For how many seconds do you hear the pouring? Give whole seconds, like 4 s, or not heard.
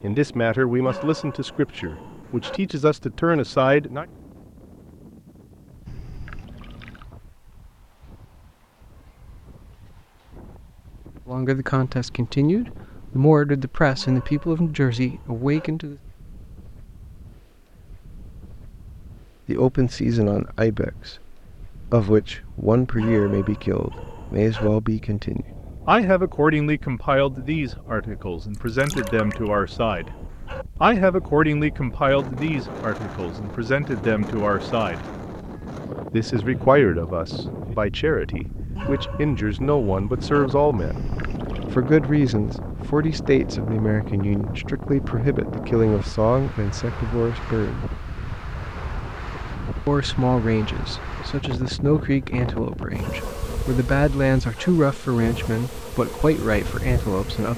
3 s.